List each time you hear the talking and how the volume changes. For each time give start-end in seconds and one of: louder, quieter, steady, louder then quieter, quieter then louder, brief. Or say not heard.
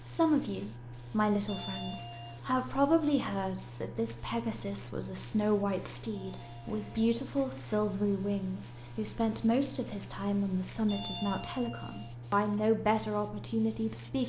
0.0-14.2 steady.